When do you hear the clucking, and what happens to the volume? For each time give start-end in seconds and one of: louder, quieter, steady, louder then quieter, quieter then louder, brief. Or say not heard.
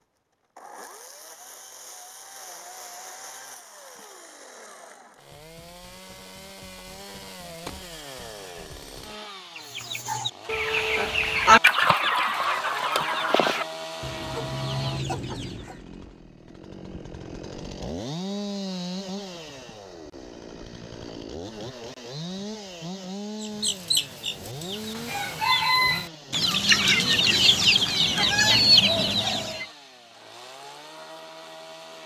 9.6-15.8 louder then quieter
23.4-29.6 louder.